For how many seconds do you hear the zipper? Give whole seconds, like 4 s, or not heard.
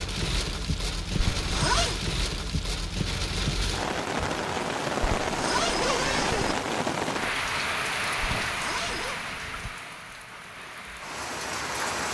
3 s.